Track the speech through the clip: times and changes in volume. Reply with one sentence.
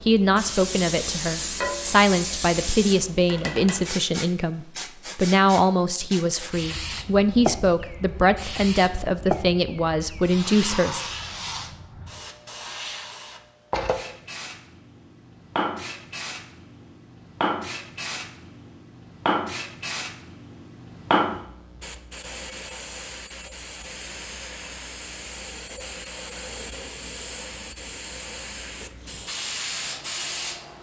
You can hear the speech from 0.0 to 11.1 s, at a steady volume.